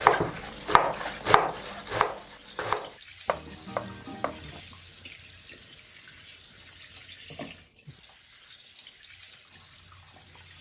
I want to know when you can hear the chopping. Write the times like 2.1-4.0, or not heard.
0.0-4.6.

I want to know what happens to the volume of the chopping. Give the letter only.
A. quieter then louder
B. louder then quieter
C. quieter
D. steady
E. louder
C.